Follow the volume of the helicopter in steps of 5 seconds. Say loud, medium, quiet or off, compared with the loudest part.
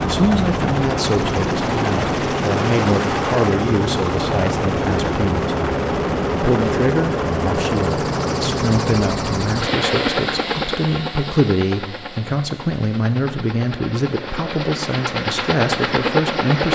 loud, loud, medium, loud.